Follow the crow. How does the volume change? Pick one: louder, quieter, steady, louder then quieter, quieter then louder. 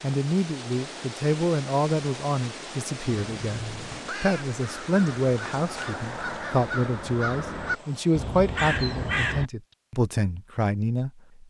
louder.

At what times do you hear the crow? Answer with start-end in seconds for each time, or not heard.
3.3-9.5.